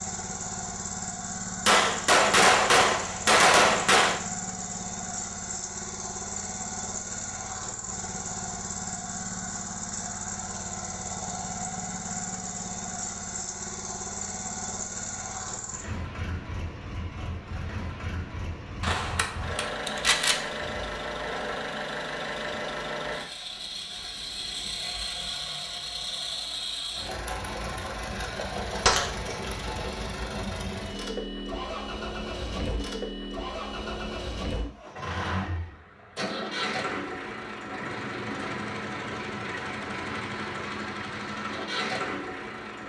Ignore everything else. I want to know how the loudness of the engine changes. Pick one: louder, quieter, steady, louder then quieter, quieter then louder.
steady.